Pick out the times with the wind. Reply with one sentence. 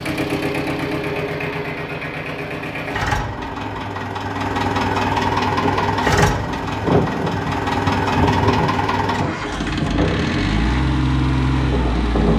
The wind can be heard from 5.5 to 12.3 s.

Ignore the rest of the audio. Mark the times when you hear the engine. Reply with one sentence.
You can hear the engine from 0.0 to 12.3 s.